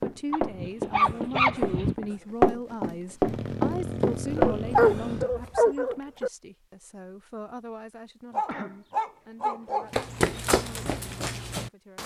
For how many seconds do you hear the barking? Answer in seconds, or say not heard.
5 s.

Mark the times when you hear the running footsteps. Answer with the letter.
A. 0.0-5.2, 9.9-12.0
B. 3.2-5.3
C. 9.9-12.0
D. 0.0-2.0
A.